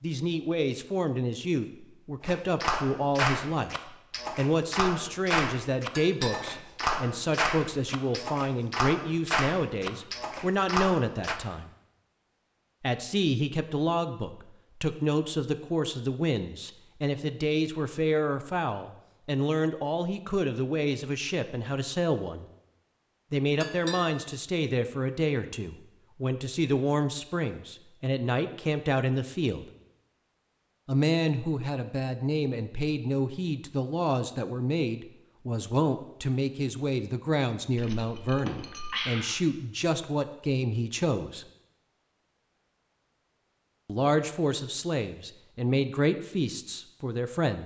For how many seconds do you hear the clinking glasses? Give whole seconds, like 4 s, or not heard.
3 s.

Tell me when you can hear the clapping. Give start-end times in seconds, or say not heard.
2.2-11.4.